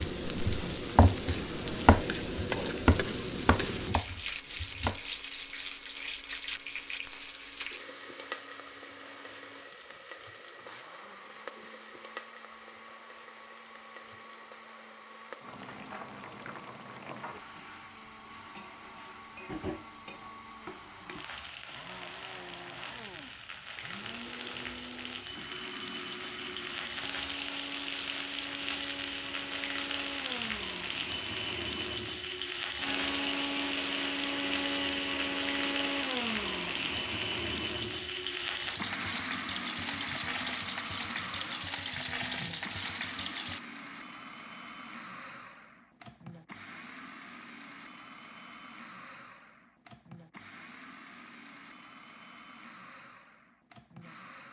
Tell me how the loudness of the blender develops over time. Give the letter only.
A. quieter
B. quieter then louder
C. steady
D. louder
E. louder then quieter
E.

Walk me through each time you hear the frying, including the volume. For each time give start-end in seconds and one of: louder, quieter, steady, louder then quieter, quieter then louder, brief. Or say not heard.
0.0-43.6 quieter then louder.